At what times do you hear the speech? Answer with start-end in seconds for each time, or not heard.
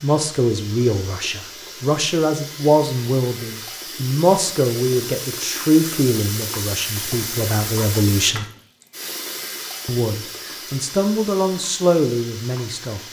0.0-8.4, 9.8-13.0.